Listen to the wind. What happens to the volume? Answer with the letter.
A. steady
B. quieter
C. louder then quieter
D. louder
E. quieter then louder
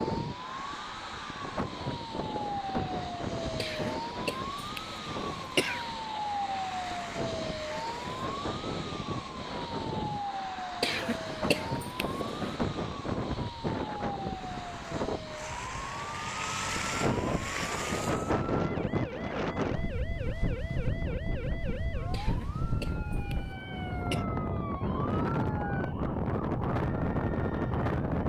D.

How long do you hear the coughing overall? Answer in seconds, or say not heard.
6 s.